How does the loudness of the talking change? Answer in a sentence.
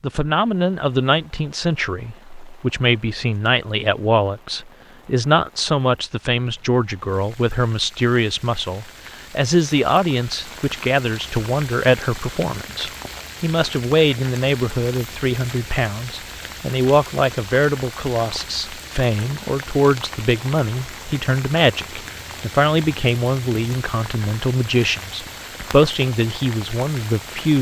The loudness of the talking stays about the same.